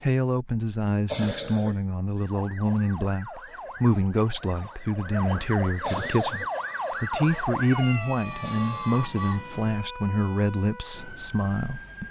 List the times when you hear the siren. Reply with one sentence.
The siren can be heard from 2.1 to 12.0 s.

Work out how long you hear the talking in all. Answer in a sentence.
The talking can be heard for 12 seconds in total.